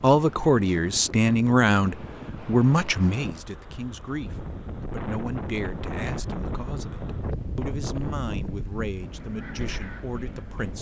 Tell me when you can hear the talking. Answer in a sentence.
You can hear the talking from 0.0 to 10.7 s.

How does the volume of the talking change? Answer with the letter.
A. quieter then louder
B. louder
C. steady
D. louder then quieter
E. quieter
E.